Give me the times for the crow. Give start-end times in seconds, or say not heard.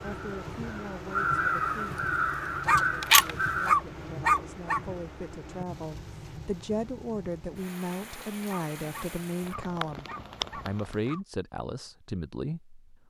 0.0-3.7.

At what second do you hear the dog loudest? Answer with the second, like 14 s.
4 s.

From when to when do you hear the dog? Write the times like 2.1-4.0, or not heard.
2.6-4.8, 8.4-11.2.